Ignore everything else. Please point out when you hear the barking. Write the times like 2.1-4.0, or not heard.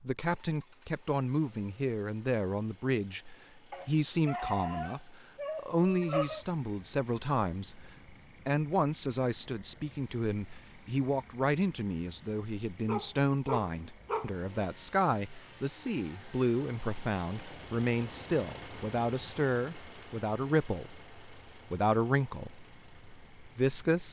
3.7-6.5, 12.8-14.3.